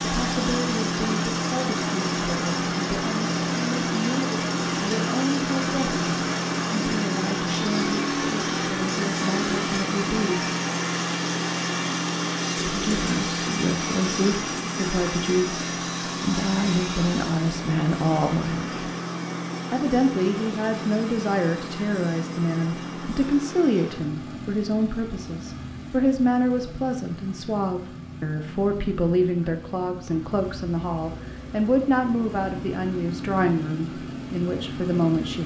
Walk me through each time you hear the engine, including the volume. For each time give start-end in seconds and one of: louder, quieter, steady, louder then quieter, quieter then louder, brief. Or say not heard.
0.0-35.4 quieter.